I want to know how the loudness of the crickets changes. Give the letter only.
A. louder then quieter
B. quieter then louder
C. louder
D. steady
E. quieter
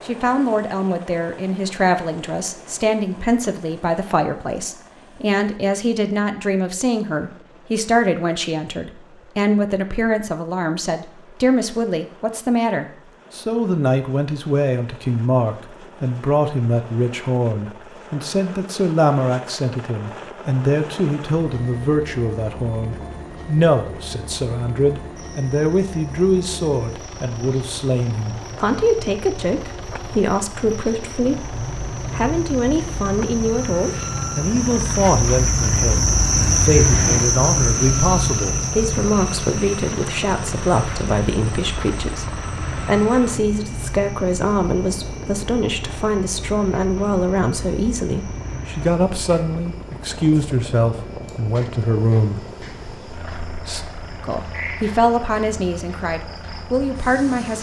A.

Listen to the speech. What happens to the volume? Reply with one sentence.
The volume of the speech stays about the same.